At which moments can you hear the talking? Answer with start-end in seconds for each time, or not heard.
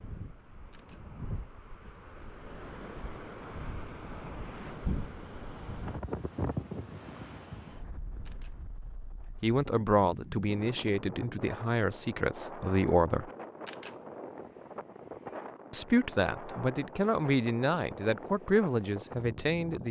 9.4-13.3, 15.7-19.8.